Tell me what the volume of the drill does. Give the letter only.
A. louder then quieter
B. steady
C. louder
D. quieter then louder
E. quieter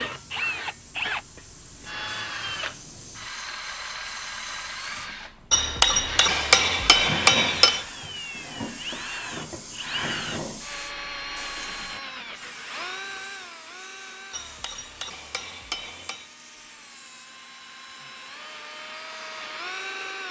E.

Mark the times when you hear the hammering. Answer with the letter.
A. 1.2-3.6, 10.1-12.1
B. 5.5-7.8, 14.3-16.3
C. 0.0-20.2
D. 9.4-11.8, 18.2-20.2
B.